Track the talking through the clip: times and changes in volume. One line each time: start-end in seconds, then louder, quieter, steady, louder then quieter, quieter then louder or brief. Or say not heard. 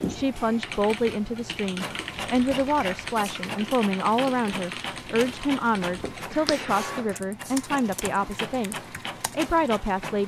0.1-10.2 steady.